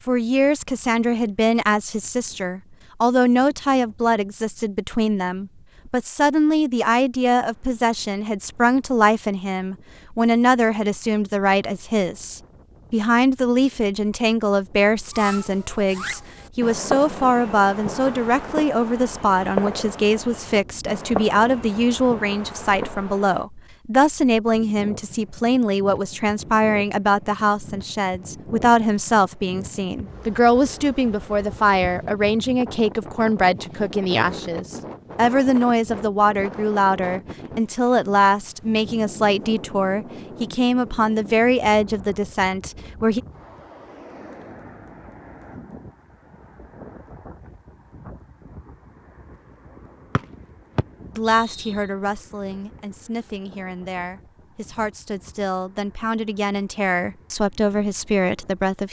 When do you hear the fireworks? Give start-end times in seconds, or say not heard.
15.1-23.4.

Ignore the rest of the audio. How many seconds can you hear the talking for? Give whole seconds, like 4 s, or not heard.
51 s.